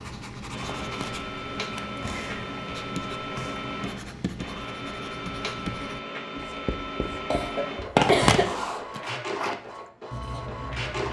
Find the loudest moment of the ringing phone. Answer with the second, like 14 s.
8 s.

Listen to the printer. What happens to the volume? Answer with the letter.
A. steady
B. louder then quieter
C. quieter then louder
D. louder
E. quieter
A.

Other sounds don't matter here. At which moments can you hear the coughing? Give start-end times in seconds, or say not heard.
7.3-8.4.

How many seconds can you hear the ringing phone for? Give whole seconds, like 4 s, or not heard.
2 s.